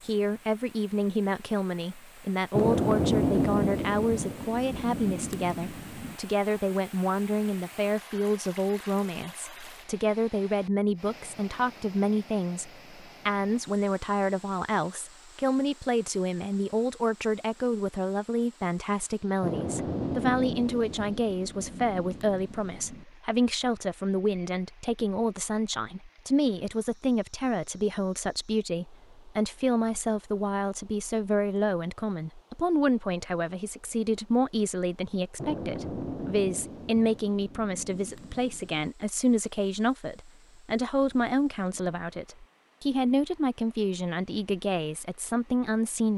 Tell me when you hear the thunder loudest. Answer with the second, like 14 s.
3 s.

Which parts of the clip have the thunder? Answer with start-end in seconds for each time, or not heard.
2.5-6.2, 19.4-23.1, 35.4-38.9.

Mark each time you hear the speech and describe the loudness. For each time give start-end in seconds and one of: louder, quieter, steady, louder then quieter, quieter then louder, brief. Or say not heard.
0.1-46.1 steady.